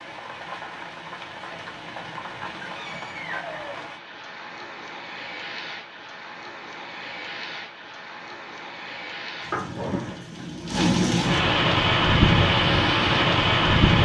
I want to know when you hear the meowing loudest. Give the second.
10 s.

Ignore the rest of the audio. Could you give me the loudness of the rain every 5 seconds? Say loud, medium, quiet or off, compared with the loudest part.
quiet, quiet, loud.